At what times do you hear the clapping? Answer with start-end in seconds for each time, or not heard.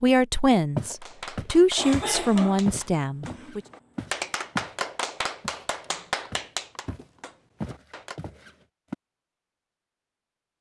1.0-8.2.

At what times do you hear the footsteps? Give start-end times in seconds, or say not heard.
0.8-4.8, 5.4-8.9.